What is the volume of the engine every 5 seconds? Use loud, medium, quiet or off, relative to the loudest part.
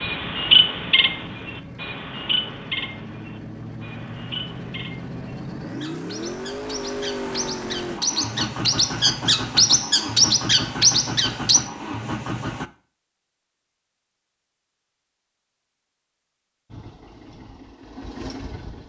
medium, loud, loud, medium.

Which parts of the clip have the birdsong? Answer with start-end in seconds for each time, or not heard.
0.0-11.6.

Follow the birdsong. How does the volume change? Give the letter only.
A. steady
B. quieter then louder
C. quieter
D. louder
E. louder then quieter
B.